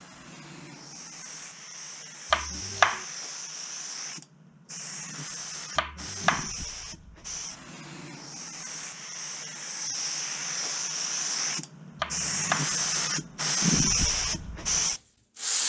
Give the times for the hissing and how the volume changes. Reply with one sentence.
You can hear the hissing from 0.0 to 15.6 s, getting louder.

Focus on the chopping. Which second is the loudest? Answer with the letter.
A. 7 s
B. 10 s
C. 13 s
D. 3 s
D.